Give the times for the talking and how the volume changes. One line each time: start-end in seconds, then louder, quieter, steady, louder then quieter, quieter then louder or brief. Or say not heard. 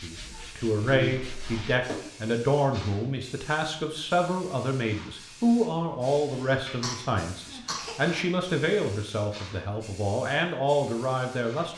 0.0-11.7 steady.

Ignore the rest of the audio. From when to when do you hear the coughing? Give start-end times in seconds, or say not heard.
0.8-2.0, 6.3-8.0.